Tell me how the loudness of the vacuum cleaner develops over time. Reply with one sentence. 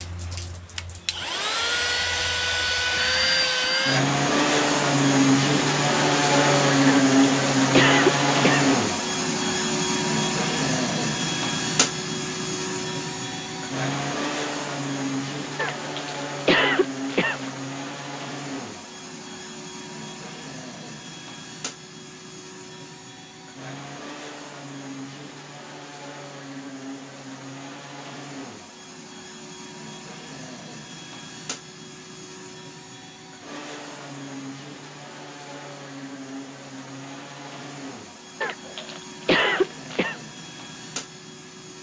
The volume of the vacuum cleaner goes down.